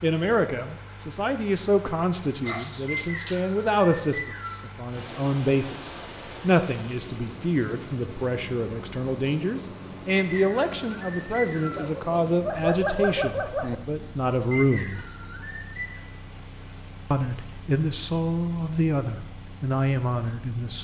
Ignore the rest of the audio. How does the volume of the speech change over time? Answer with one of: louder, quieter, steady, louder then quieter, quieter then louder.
steady.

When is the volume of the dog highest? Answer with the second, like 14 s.
13 s.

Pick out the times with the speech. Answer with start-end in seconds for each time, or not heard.
0.0-15.1, 17.1-20.8.